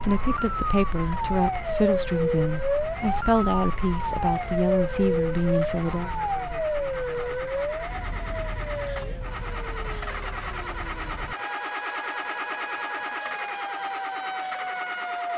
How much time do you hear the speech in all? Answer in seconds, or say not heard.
6 s.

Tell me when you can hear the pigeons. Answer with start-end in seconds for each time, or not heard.
not heard.